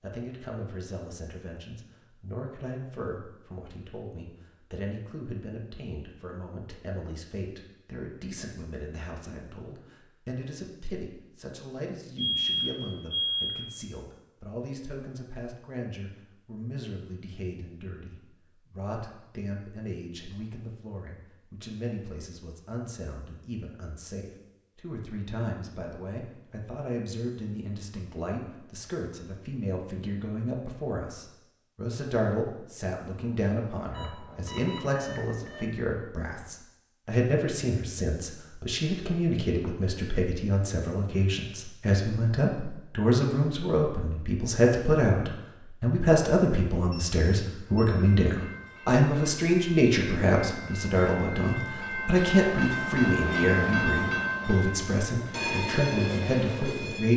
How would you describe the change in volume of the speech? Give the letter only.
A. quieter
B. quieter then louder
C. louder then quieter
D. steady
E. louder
E.